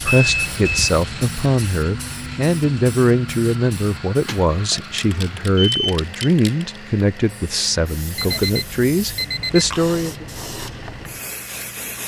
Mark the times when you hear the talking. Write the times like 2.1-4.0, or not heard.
0.1-10.2.